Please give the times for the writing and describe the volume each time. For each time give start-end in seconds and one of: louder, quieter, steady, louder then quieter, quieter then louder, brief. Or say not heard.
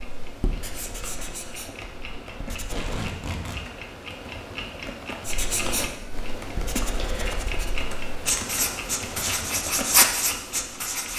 0.2-3.0 brief
5.2-11.1 louder.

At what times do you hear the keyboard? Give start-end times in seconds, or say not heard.
0.7-10.1.